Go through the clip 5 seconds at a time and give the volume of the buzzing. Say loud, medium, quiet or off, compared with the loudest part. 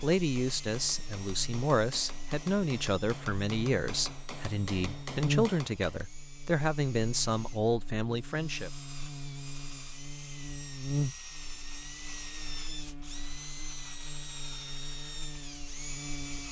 medium, loud, loud, medium.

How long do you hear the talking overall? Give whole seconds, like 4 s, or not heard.
9 s.